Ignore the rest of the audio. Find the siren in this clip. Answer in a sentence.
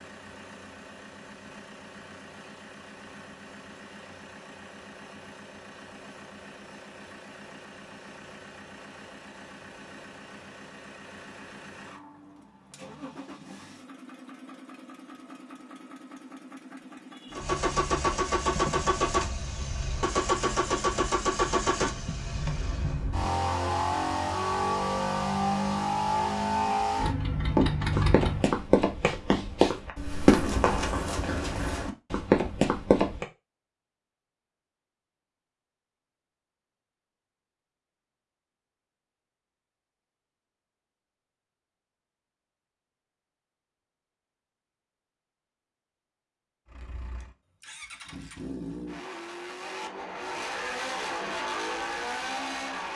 The siren can't be heard in this clip.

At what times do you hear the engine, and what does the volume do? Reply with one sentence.
The engine can be heard from 0.0 to 28.4 s, getting louder; and from 46.6 to 52.9 s, getting louder.